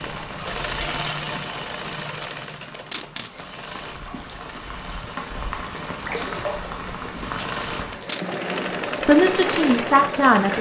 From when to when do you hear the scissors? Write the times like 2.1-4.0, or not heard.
not heard.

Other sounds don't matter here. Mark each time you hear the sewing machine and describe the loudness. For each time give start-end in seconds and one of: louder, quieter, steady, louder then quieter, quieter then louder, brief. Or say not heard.
0.0-10.5 quieter then louder.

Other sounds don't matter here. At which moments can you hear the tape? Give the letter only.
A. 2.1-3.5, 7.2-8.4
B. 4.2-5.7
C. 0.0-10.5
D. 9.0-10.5
A.